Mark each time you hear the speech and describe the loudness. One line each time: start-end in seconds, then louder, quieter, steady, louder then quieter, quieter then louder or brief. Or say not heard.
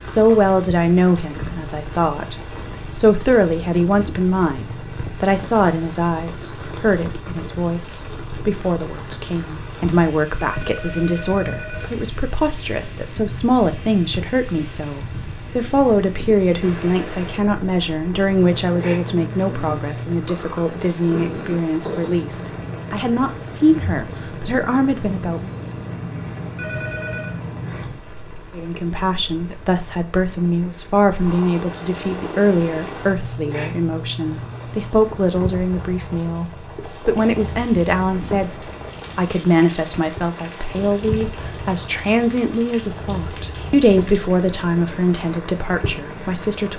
0.0-2.4 brief
3.0-25.6 steady
28.6-46.7 steady.